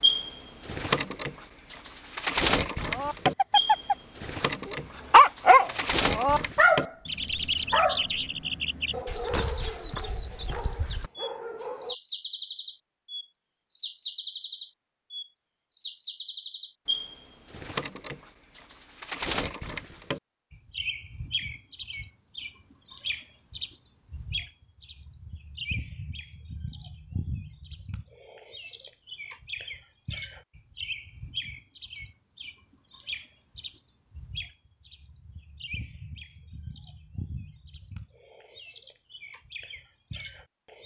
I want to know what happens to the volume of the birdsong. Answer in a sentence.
The loudness of the birdsong goes down.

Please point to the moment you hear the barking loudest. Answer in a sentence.
The loudest moment of the barking is at 5 seconds.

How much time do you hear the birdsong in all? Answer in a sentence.
The birdsong can be heard for 41 seconds in total.